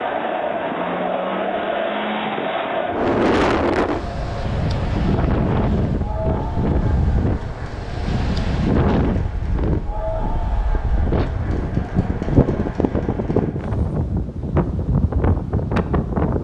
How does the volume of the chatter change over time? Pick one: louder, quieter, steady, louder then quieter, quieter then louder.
quieter.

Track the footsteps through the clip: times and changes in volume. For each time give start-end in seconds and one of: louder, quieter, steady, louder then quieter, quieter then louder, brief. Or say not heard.
not heard.